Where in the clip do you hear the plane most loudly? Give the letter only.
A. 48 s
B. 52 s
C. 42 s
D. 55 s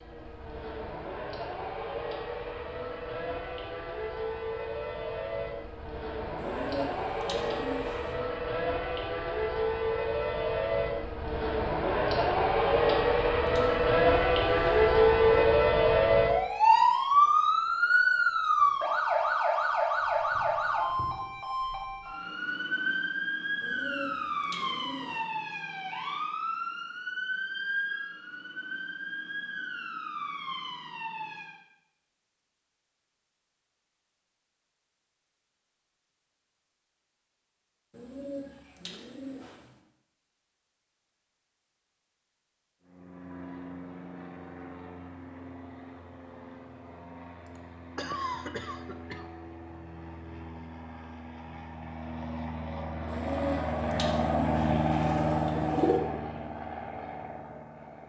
D.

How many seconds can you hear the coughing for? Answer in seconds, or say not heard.
2 s.